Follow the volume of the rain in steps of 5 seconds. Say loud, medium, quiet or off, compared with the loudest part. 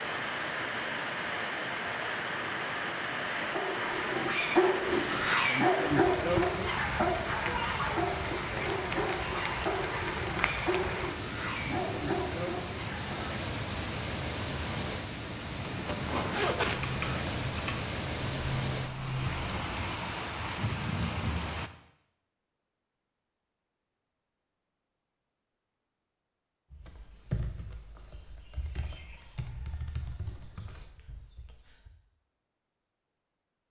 loud, loud, loud, loud, loud, off, off.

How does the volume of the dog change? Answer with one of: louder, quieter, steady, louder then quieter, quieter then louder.
quieter.